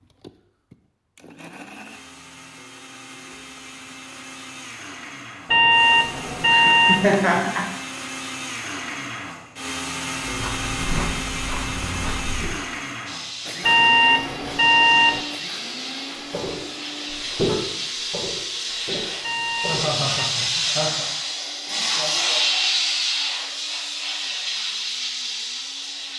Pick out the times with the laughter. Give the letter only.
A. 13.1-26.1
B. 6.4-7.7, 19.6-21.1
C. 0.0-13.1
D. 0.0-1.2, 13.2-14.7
B.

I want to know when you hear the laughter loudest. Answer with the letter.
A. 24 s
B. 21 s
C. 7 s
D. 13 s
C.